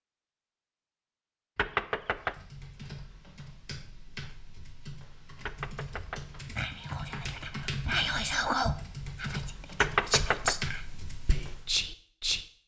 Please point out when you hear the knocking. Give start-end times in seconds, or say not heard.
1.6-2.4, 5.5-6.3, 9.8-10.6.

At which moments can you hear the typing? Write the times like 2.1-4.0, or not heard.
2.0-11.8.